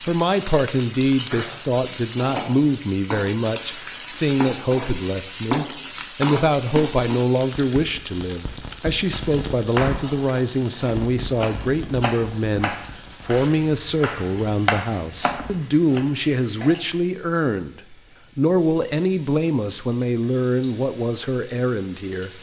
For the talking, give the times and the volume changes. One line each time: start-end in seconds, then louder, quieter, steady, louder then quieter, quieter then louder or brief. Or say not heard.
0.1-22.3 steady.